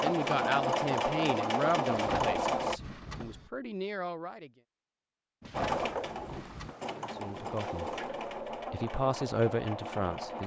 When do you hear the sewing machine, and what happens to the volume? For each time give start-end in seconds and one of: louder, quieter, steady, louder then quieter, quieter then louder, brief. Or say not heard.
0.0-2.8 brief
5.5-10.4 steady.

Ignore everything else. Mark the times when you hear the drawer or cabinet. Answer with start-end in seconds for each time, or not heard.
1.9-3.5, 5.4-6.8.